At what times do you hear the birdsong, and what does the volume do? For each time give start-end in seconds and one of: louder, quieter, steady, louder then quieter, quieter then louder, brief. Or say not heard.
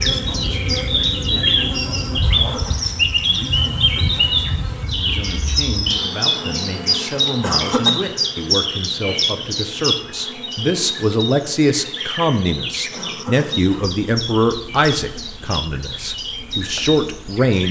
0.0-17.6 quieter.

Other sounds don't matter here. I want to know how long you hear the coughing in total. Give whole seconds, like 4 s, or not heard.
2 s.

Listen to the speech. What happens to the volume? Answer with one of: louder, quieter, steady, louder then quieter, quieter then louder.
louder.